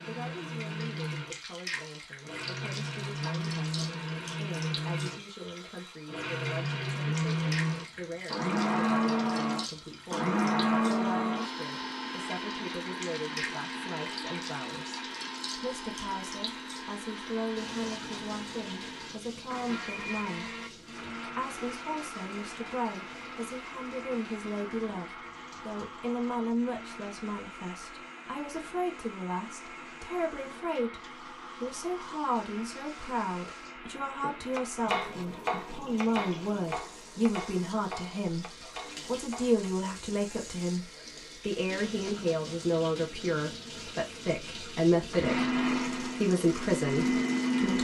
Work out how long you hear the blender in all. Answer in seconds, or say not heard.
38 s.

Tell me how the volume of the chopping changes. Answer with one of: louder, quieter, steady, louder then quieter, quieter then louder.
quieter.